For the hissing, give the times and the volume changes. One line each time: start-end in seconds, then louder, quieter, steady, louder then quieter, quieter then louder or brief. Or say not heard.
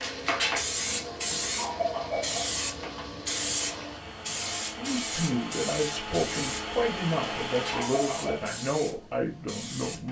0.0-10.0 quieter.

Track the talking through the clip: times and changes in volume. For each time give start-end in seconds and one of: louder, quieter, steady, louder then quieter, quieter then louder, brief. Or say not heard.
4.8-10.0 steady.